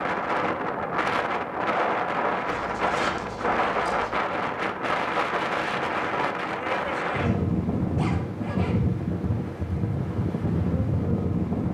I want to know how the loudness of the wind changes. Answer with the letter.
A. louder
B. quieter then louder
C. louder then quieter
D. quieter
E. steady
E.